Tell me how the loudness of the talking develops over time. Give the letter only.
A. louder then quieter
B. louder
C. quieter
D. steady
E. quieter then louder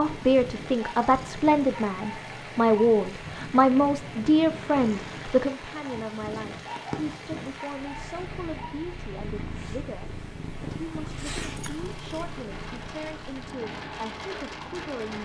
C.